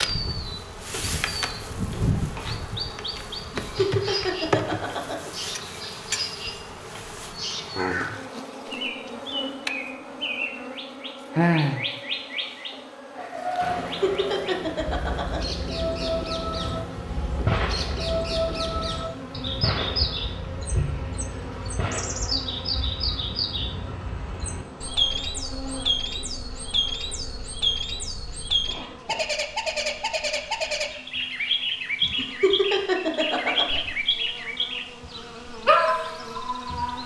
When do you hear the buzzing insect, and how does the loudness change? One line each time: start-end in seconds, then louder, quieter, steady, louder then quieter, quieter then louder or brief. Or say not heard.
0.0-37.0 quieter.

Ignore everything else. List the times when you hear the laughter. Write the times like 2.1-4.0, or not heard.
3.4-5.3, 13.6-15.6, 32.0-33.8.